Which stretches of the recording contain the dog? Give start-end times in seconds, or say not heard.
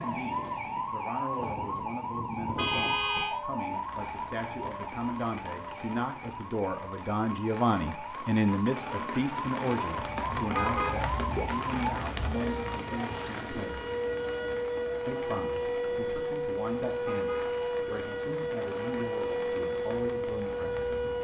not heard.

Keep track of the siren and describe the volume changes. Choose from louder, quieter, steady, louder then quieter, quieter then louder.
quieter then louder.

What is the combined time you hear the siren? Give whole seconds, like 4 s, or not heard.
21 s.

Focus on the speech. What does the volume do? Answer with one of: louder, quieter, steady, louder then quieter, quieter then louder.
louder then quieter.